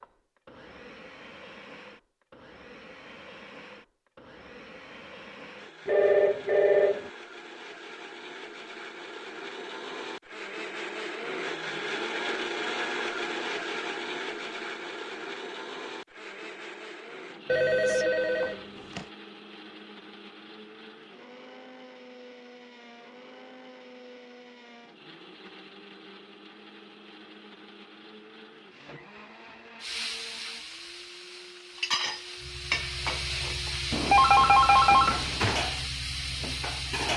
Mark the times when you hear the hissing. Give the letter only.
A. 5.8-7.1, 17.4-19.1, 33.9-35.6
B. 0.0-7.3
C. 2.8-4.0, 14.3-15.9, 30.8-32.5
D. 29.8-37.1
D.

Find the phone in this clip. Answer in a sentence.
The phone can be heard from 5.8 to 7.1 s, from 17.4 to 19.1 s and from 33.9 to 35.6 s.